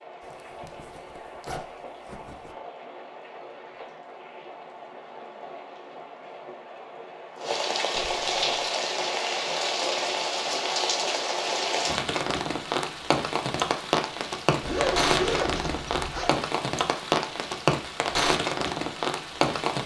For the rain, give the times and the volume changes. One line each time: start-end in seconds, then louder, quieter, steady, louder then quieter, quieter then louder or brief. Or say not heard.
0.0-19.8 louder.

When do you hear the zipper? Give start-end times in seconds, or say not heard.
0.2-2.5, 8.0-8.4, 14.6-16.4.